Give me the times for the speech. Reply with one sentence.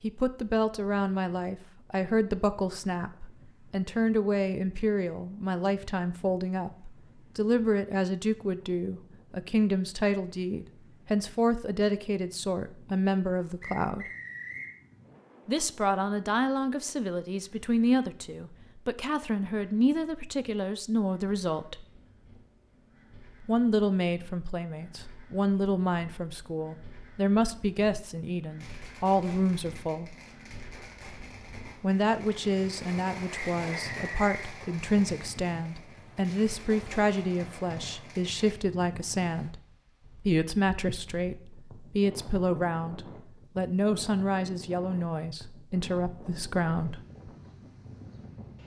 The speech can be heard from 0.0 to 14.1 s, from 15.4 to 21.9 s, from 23.4 to 30.1 s, from 31.8 to 39.6 s and from 40.2 to 47.0 s.